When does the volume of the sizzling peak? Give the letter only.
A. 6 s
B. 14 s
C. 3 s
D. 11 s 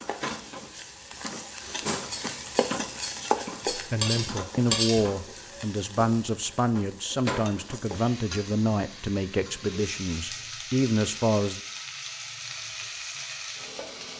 C.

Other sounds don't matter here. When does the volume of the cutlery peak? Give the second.
5 s.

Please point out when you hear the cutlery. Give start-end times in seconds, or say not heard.
1.6-5.0.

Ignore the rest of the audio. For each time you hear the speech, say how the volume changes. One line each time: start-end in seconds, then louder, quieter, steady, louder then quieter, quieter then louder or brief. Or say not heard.
3.7-11.6 steady.